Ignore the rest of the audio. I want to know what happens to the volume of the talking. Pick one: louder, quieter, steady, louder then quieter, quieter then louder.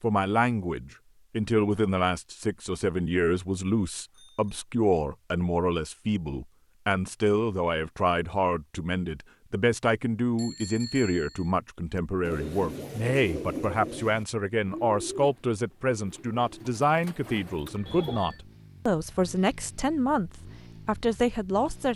steady.